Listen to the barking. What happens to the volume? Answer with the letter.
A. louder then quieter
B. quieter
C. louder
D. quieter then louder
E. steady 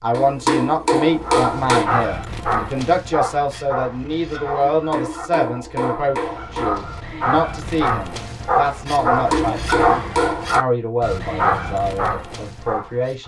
D.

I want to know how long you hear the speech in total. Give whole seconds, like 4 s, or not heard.
13 s.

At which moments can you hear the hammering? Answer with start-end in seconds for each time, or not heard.
0.1-1.9, 4.7-7.0, 8.9-10.6.